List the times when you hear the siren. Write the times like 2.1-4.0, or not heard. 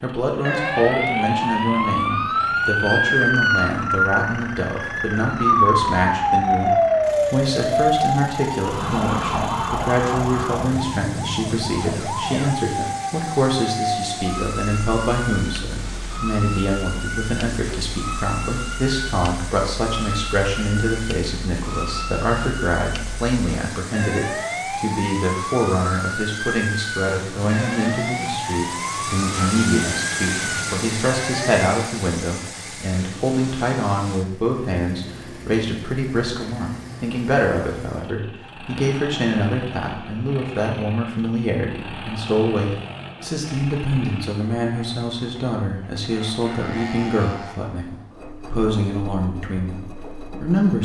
0.5-31.7.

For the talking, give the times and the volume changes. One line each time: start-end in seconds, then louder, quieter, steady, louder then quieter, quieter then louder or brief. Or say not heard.
0.0-50.8 steady.